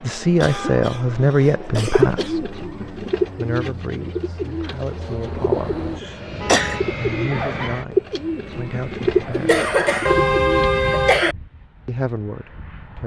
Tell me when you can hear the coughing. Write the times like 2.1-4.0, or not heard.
0.4-2.4, 5.5-6.8, 9.3-10.2, 10.9-11.3.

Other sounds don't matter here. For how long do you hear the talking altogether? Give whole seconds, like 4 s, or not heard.
9 s.